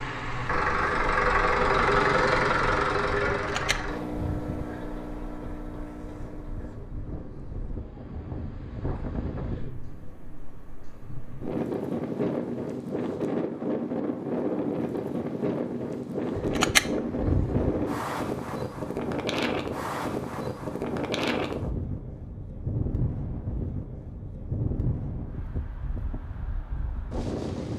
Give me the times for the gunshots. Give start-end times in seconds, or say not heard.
3.4-4.7, 16.4-17.9.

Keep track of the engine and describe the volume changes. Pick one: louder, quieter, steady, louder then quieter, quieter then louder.
quieter.